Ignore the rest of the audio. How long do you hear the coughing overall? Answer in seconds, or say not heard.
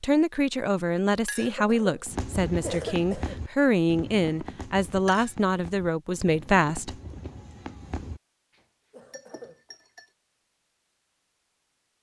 3 s.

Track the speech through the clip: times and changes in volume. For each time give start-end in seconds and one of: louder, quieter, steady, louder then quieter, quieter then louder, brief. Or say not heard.
0.0-7.0 steady.